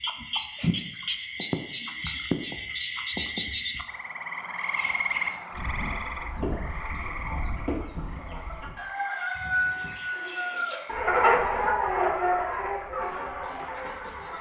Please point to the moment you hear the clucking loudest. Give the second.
11 s.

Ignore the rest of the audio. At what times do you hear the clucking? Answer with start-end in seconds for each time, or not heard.
4.6-14.3.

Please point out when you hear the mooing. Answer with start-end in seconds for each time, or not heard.
not heard.